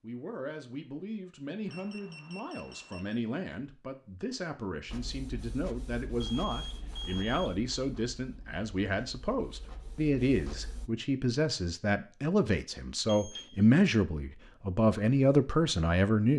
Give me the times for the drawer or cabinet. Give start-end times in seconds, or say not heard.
not heard.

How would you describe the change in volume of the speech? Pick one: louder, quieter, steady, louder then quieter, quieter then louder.
louder.